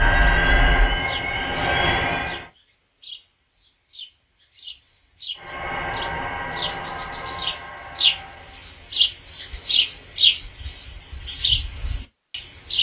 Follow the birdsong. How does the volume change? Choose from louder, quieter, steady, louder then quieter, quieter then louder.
louder.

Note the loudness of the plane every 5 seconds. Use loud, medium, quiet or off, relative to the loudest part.
loud, medium, off.